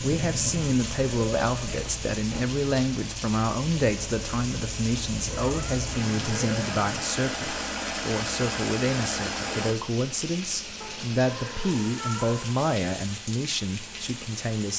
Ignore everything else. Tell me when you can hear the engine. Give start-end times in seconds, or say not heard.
0.0-9.8.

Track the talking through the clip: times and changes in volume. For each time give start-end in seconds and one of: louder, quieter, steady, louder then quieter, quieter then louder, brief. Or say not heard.
0.0-14.7 steady.